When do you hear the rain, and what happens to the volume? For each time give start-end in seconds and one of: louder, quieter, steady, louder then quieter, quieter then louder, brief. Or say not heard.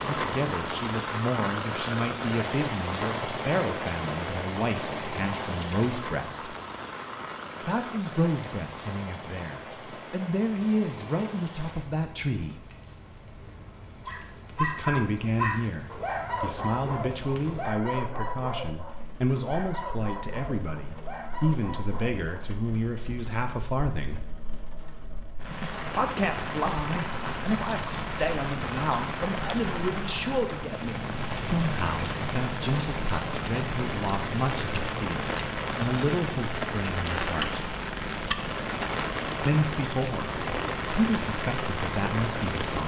0.0-42.8 quieter then louder.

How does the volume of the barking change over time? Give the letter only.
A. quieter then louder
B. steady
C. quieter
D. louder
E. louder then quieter
C.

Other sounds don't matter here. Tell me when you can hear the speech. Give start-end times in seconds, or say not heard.
0.0-6.5, 7.6-12.6, 14.5-24.2, 25.9-37.6, 39.5-42.8.